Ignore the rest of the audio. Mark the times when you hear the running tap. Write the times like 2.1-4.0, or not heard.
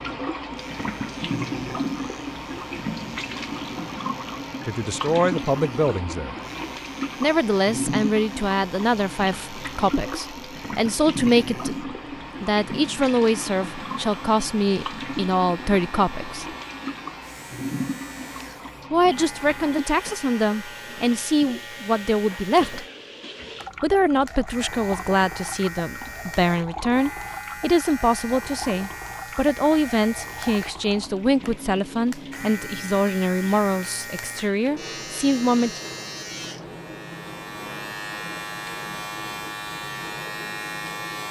0.0-41.2.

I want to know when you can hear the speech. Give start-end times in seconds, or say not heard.
4.7-6.3, 7.2-16.6, 18.9-22.9, 23.8-35.8.